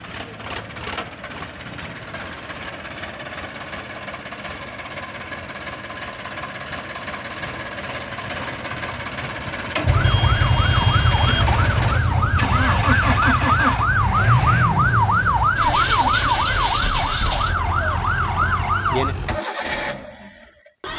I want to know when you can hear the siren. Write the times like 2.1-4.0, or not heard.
9.8-19.4.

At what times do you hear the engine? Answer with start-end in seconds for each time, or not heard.
0.0-20.9.